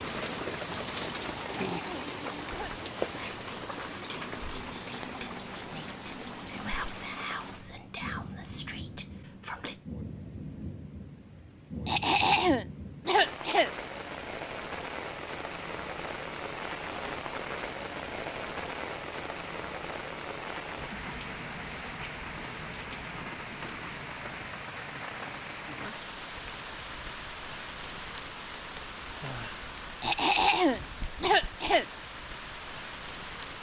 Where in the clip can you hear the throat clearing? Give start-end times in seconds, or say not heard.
1.4-2.8, 11.8-13.7, 30.0-31.9.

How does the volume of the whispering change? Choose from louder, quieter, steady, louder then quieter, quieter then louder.
louder.